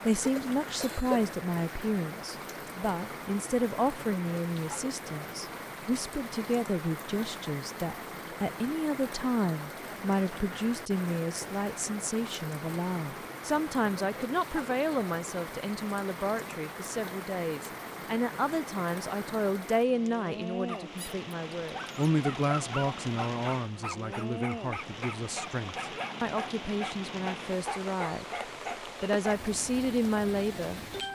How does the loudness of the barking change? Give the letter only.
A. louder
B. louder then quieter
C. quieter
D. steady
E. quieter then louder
D.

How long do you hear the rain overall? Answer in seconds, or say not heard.
31 s.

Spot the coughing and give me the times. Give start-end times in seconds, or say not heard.
0.2-1.2.